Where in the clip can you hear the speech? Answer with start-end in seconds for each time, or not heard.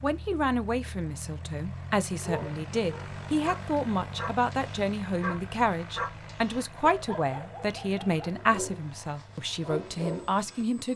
0.0-10.9.